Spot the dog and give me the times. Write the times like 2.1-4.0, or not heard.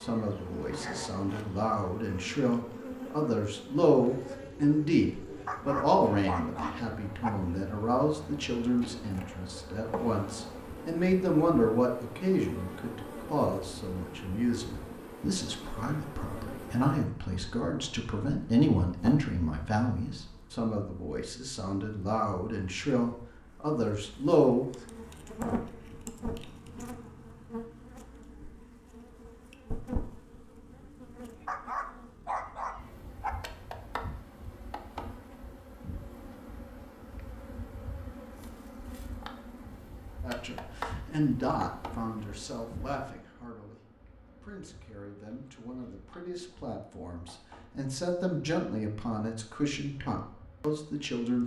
5.3-7.3, 31.4-33.3.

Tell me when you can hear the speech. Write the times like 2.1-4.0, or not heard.
0.0-24.7, 40.2-51.4.